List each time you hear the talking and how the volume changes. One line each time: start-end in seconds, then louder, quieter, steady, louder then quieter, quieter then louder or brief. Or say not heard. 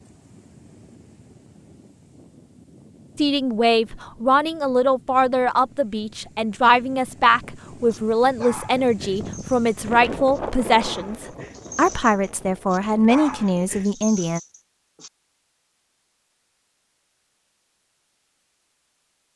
3.1-14.4 steady.